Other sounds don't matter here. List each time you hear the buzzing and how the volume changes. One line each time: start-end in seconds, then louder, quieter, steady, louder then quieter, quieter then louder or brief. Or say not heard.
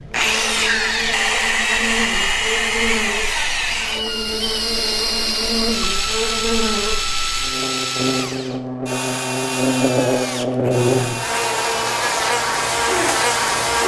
0.0-13.8 louder.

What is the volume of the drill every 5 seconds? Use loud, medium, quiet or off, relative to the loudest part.
loud, loud, medium.